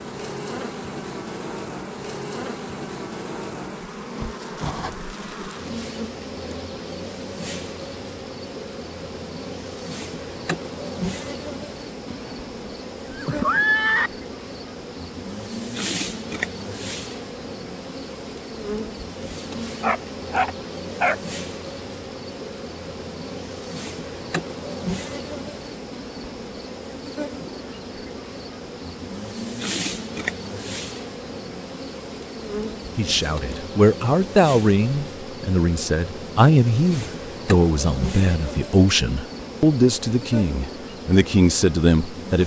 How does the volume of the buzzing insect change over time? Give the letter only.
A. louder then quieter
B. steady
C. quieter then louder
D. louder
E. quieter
B.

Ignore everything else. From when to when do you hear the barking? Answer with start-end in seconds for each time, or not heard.
19.8-21.2.